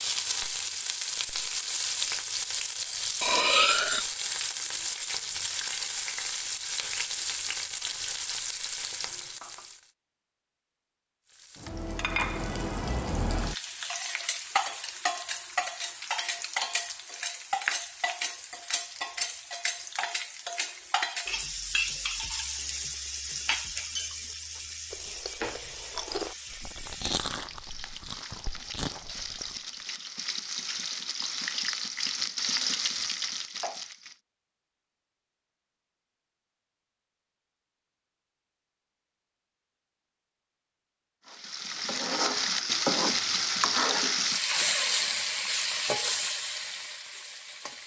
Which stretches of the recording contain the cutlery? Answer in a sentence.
You can hear the cutlery from 3.2 to 4.1 s.